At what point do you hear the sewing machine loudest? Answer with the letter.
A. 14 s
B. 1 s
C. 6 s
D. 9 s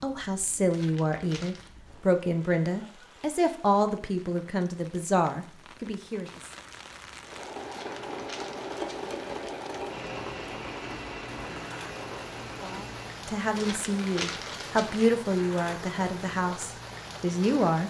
D.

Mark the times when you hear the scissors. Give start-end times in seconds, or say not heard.
not heard.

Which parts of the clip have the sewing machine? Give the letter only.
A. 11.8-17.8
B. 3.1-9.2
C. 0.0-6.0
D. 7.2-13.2
D.